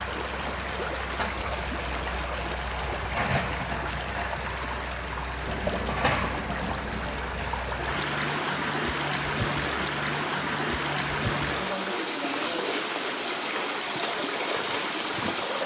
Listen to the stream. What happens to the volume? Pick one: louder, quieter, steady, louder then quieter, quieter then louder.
steady.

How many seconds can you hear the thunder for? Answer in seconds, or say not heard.
2 s.